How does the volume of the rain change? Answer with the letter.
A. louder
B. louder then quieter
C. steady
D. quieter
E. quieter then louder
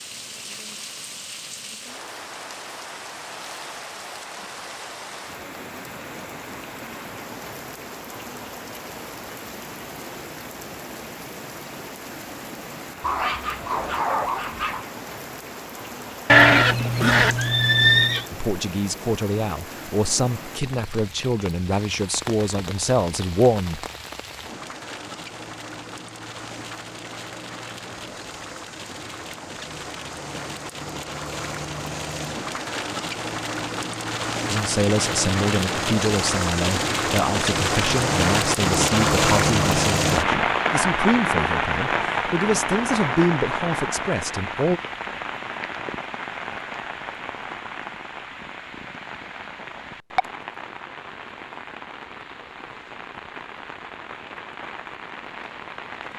B.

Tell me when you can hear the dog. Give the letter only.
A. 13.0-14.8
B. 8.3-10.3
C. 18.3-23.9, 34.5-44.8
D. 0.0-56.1
A.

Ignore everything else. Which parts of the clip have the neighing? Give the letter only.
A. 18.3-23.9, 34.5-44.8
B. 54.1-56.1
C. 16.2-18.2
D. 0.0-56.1
C.